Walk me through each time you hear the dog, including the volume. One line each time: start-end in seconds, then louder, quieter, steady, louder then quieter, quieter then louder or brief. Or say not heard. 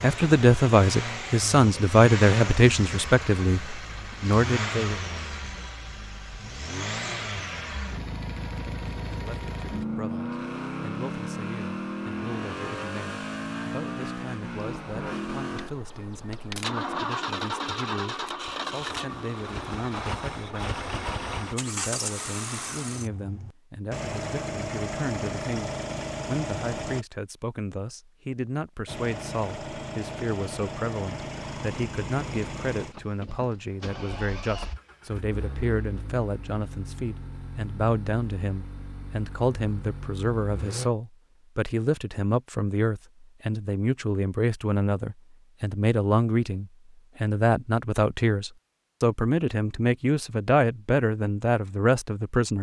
not heard.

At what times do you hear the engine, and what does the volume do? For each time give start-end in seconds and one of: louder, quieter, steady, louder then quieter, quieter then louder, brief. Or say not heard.
0.0-27.1 steady
28.9-40.9 quieter.